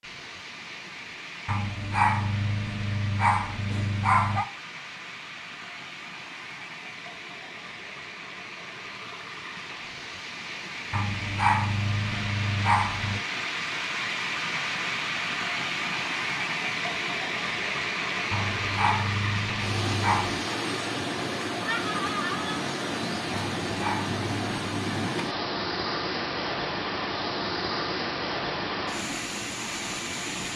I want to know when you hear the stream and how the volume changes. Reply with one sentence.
You can hear the stream from 0.0 to 30.5 s, getting louder.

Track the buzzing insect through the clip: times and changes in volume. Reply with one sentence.
The buzzing insect can't be heard in this clip.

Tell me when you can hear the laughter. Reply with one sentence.
The laughter can be heard from 21.6 to 22.6 s.